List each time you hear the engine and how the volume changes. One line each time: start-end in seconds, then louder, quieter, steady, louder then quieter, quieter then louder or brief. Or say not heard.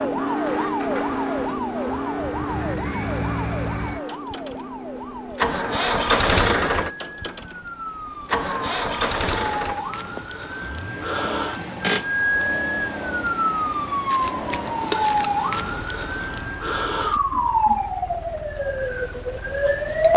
0.2-20.1 louder then quieter.